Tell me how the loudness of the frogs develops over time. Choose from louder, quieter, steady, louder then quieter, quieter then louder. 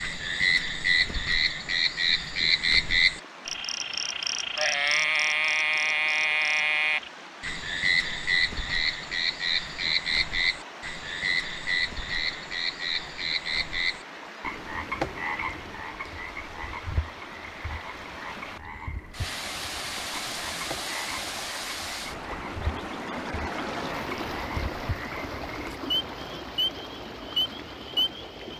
quieter then louder.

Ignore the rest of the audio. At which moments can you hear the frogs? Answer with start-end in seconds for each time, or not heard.
0.0-28.5.